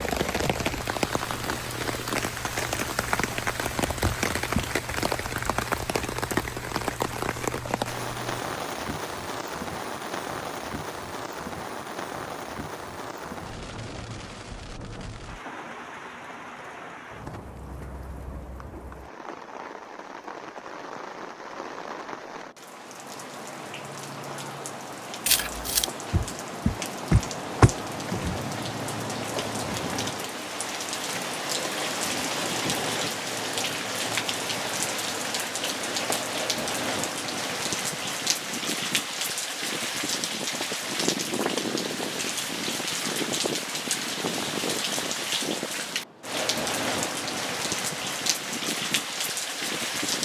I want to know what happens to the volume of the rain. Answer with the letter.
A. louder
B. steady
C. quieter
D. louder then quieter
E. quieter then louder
E.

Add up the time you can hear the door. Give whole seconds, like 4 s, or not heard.
3 s.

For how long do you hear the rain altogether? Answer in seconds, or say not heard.
50 s.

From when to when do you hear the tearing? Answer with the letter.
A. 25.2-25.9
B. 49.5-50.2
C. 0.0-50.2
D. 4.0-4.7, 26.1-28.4
A.